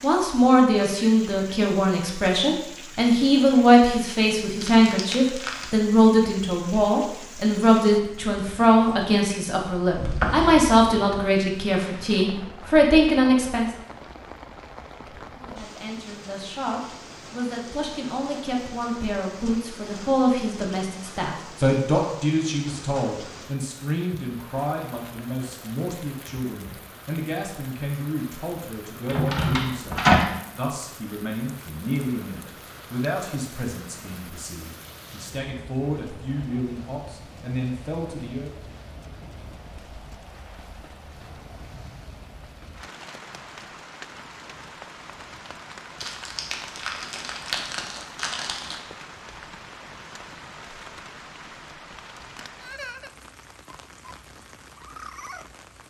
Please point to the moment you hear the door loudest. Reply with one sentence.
The loudest moment of the door is at 30 seconds.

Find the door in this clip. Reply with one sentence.
The door can be heard from 9.9 to 11.2 s and from 29.1 to 30.2 s.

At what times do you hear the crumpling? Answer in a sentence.
You can hear the crumpling from 4.6 to 5.8 s and from 46.0 to 48.8 s.